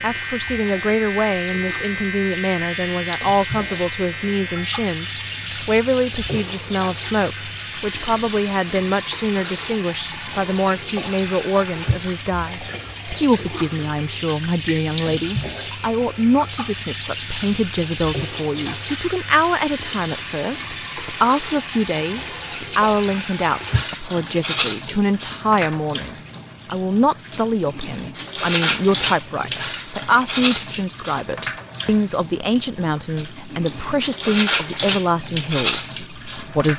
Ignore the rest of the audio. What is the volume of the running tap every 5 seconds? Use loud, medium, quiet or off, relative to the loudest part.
medium, loud, loud, loud, loud, loud, loud, loud.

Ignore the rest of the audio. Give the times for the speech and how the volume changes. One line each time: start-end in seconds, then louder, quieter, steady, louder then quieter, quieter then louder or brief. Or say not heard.
0.0-36.7 steady.